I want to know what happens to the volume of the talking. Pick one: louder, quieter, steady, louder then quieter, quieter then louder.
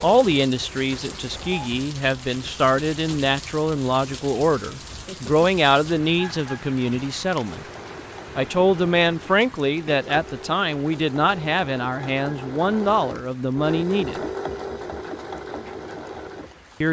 steady.